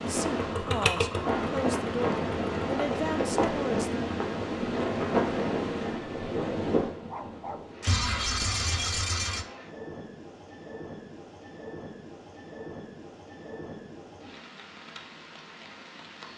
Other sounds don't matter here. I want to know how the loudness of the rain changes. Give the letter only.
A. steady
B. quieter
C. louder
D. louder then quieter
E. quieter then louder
B.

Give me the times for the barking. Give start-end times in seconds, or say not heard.
7.1-7.8.